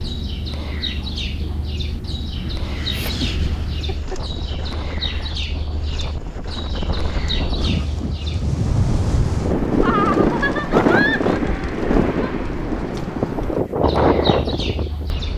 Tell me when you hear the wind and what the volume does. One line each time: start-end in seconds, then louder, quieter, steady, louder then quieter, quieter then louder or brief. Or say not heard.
0.0-15.3 louder.